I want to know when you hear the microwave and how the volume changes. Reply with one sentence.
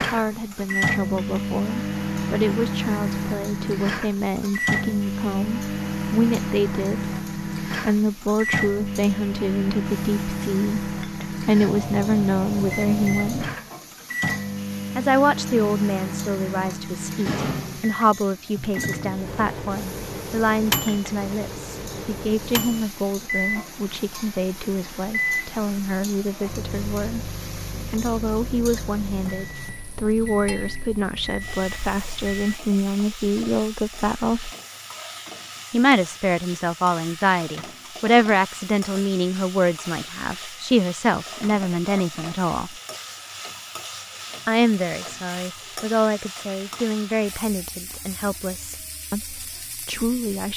The microwave can be heard from 0.0 to 32.6 s, getting quieter.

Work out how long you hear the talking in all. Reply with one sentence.
The talking can be heard for 46 seconds in total.